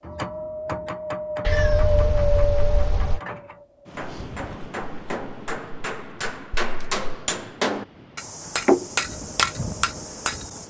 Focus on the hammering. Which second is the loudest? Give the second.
9 s.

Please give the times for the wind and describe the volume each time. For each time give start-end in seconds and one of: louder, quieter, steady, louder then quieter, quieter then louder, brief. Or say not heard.
0.0-10.6 quieter then louder.